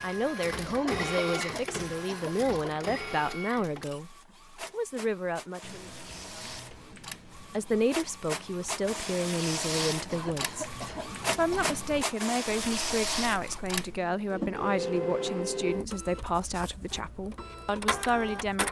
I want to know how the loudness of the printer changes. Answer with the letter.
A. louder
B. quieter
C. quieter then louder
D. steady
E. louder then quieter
C.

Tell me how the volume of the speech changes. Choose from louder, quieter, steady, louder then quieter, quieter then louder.
steady.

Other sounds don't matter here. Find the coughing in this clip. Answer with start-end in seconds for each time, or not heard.
0.7-2.8, 10.1-11.8.